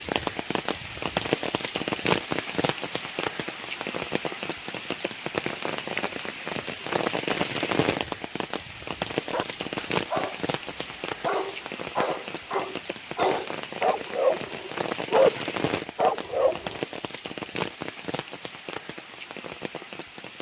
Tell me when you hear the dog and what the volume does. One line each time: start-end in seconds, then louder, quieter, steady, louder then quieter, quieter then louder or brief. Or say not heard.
9.2-16.8 louder.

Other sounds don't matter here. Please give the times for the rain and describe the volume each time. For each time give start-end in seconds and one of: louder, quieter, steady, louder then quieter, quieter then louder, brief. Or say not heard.
0.0-20.3 quieter.